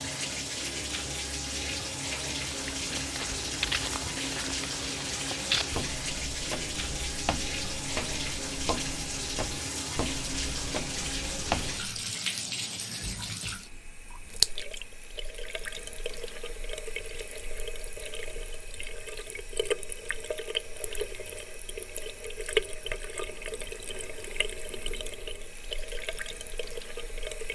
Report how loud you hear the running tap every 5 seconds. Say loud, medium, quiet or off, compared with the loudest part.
loud, loud, loud, medium, loud, medium.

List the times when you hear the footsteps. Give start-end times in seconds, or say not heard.
2.5-11.8.